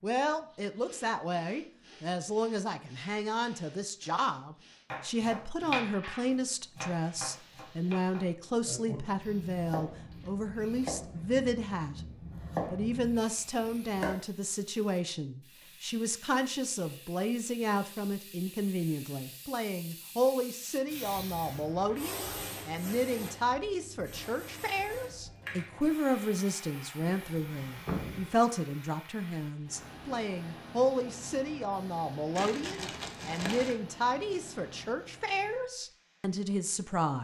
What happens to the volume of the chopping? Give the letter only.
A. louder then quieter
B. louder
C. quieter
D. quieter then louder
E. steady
D.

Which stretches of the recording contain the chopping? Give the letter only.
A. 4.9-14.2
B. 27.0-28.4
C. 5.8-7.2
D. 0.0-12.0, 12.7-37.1
A.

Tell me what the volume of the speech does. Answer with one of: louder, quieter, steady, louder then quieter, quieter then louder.
steady.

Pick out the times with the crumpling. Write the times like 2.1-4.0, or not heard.
32.4-33.8.